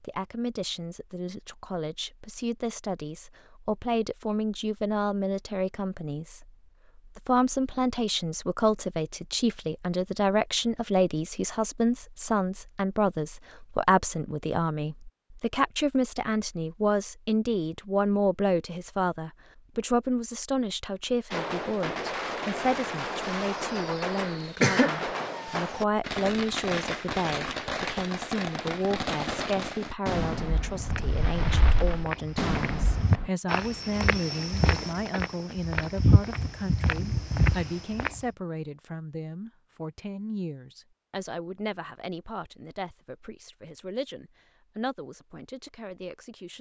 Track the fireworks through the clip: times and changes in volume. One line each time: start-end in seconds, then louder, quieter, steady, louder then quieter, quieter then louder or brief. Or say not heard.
21.3-33.3 steady.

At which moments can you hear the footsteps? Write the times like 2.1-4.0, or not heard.
30.8-38.2.